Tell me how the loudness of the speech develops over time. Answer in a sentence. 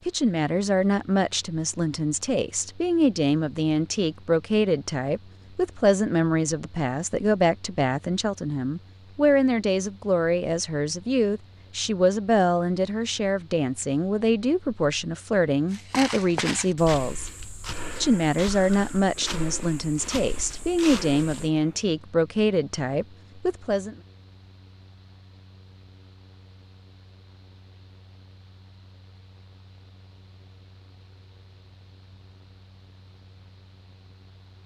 The loudness of the speech stays about the same.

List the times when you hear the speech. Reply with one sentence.
The speech can be heard from 0.1 to 17.4 s and from 18.0 to 23.9 s.